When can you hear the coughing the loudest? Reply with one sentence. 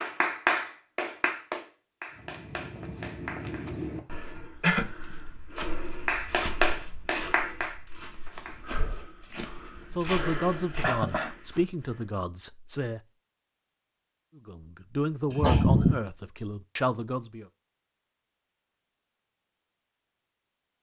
The loudest moment of the coughing is at 16 seconds.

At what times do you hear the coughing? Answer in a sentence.
The coughing can be heard from 3.6 to 4.9 s, from 10.8 to 11.3 s and from 15.3 to 16.0 s.